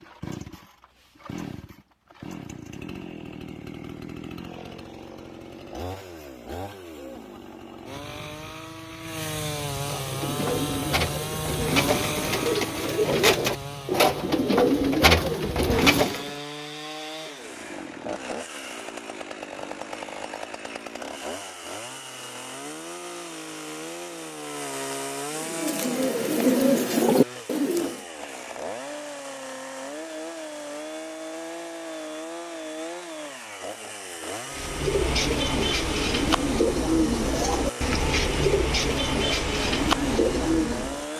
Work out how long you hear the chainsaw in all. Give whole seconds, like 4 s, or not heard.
41 s.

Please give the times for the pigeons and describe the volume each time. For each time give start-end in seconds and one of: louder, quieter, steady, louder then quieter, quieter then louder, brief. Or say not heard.
9.8-16.4 louder
25.3-28.0 brief
34.5-41.0 steady.